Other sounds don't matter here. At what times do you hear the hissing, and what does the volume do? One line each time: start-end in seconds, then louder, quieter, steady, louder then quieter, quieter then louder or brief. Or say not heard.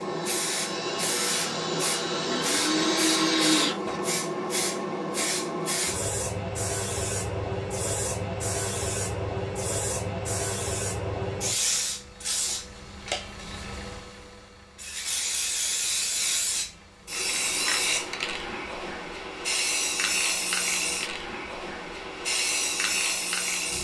0.0-23.7 steady.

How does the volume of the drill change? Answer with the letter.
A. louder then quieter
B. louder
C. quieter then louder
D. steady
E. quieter
B.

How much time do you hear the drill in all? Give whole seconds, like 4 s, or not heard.
4 s.